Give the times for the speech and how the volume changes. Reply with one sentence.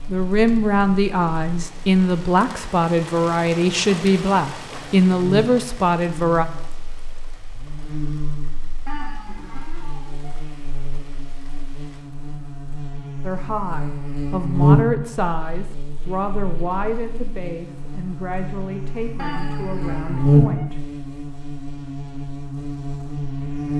The speech can be heard from 0.1 to 6.5 s, at a steady volume; and from 13.2 to 20.8 s, getting quieter.